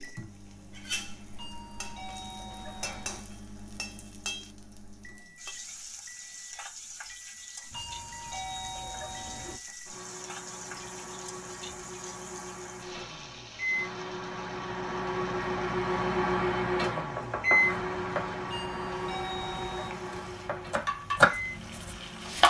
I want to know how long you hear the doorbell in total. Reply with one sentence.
The doorbell can be heard for 5 seconds in total.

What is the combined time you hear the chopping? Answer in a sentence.
You can hear the chopping for 3 seconds altogether.